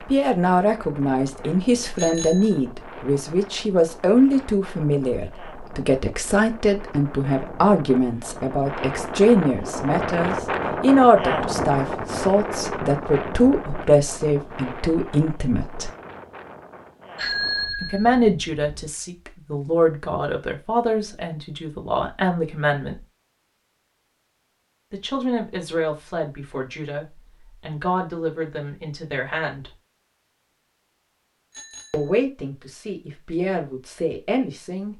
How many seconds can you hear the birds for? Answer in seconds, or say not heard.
not heard.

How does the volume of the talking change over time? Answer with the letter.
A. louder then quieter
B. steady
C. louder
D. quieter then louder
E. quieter
E.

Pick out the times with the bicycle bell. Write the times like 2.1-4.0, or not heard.
1.9-2.5, 17.1-18.1, 31.5-32.1.